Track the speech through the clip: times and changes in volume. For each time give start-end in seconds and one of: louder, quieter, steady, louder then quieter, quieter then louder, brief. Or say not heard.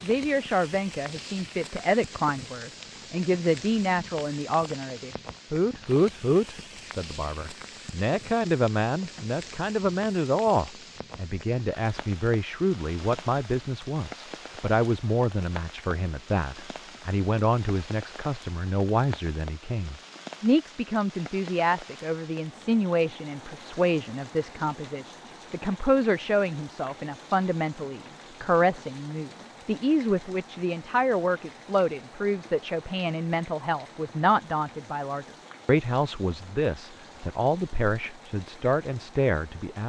0.0-39.8 steady.